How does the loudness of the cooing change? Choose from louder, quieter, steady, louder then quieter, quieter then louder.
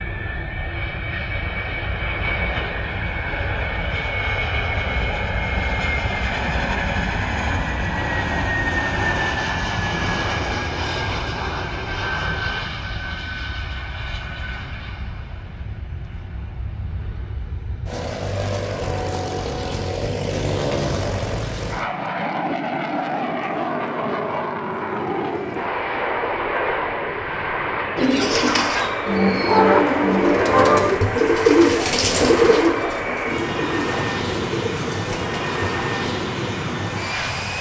quieter.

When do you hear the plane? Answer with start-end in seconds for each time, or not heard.
0.0-37.5.